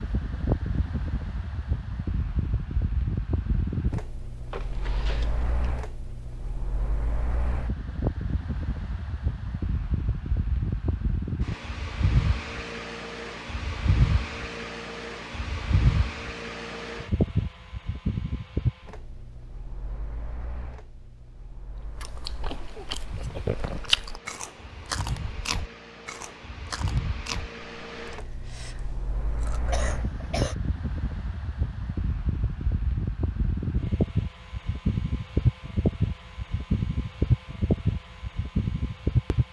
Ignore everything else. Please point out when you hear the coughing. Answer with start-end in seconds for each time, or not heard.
4.5-5.7, 22.3-23.6, 29.6-30.6.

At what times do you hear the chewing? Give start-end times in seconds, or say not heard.
21.9-29.6.